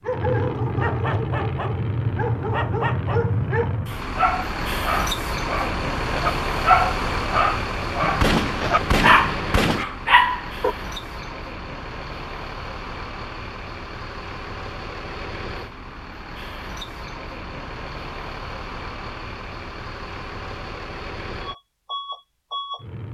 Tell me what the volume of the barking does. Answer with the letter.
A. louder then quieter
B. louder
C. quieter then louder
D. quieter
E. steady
B.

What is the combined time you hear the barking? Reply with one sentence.
The barking can be heard for 11 seconds in total.